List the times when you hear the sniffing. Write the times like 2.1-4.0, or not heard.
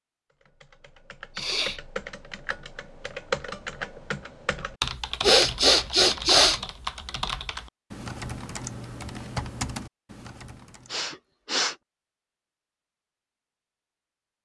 1.4-1.8, 5.2-6.6, 10.9-11.8.